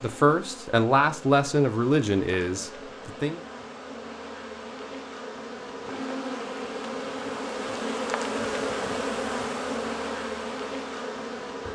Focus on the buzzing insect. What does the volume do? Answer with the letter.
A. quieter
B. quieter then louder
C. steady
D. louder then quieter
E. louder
E.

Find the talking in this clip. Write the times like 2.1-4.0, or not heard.
0.0-3.4.